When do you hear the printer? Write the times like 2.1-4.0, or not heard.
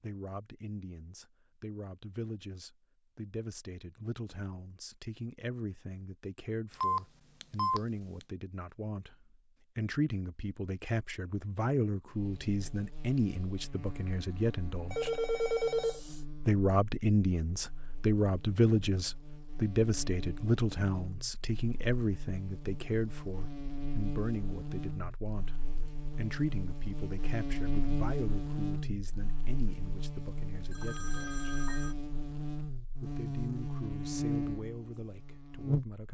not heard.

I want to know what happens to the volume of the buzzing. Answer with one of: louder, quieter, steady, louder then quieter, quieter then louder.
louder.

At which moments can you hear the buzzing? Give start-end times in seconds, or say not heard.
12.1-36.0.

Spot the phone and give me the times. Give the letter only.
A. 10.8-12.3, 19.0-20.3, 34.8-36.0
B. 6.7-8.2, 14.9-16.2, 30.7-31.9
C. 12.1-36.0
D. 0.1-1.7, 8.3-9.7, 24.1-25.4
B.